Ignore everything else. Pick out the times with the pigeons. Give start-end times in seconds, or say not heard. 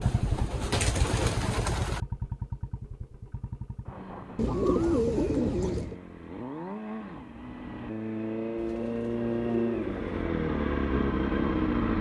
0.0-2.0, 4.3-6.0, 8.6-10.1.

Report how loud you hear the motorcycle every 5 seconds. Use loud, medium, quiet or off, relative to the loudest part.
medium, medium, loud.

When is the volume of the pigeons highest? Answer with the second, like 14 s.
5 s.